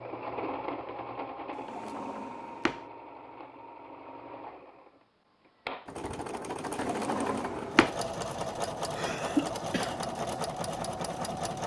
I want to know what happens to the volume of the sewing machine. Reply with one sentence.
The loudness of the sewing machine goes down, then up.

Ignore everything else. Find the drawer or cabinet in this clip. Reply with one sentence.
The drawer or cabinet can be heard from 1.6 to 2.8 s and from 6.8 to 8.0 s.